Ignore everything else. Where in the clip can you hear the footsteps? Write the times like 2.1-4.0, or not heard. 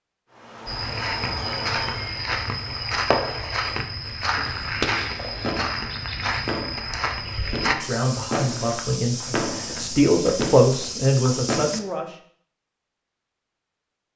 0.7-11.8.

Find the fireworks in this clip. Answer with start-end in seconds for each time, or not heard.
0.3-11.8.